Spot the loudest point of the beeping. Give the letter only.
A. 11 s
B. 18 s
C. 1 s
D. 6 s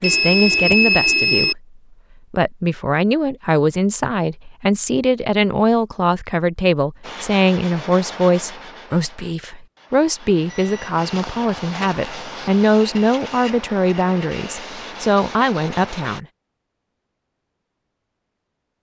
C.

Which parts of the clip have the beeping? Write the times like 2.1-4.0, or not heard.
0.0-1.6, 10.5-12.5.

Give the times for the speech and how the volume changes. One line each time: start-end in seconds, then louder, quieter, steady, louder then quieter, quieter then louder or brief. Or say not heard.
0.0-1.6 brief
2.3-16.2 steady.